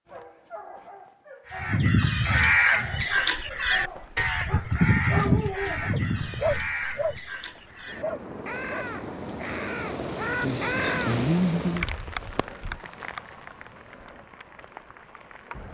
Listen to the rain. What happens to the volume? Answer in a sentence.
The volume of the rain goes up, then down.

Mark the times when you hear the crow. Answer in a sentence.
You can hear the crow from 1.5 to 11.2 s.